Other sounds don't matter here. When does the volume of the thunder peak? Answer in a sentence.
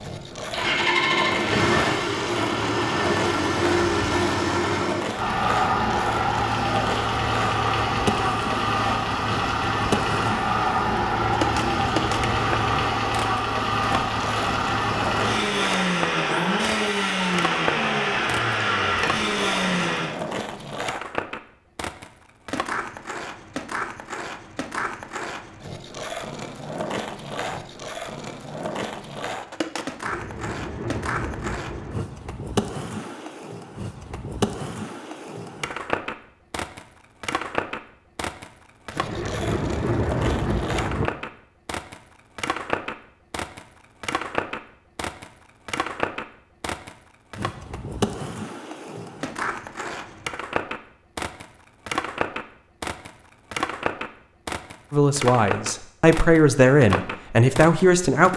The volume of the thunder peaks at 40 seconds.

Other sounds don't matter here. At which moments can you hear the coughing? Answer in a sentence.
You can't hear the coughing here.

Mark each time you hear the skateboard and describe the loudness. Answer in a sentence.
The skateboard can be heard from 0.0 to 58.3 s, at a steady volume.